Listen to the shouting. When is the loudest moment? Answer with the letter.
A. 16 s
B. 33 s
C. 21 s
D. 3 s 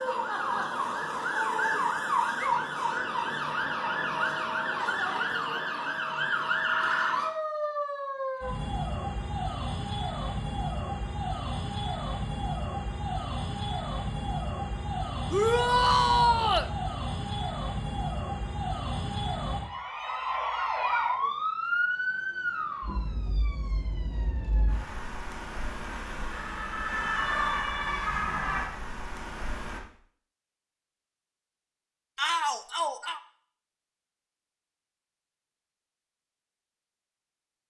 A.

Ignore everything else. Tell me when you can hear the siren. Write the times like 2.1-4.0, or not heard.
0.0-29.8.